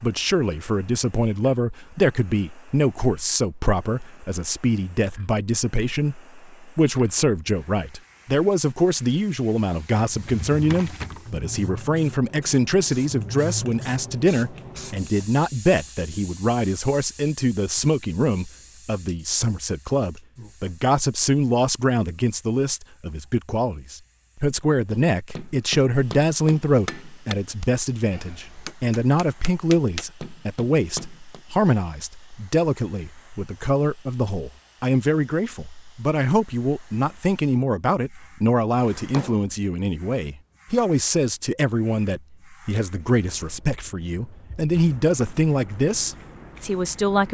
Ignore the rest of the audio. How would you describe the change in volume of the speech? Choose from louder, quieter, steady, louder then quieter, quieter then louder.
steady.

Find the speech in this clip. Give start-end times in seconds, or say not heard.
0.0-47.2.